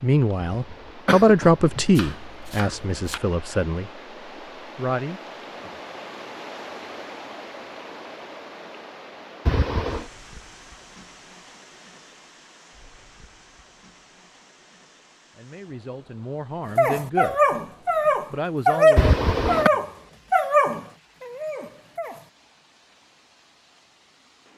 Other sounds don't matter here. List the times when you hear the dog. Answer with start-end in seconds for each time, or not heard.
16.8-22.3.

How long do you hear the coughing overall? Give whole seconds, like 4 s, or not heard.
3 s.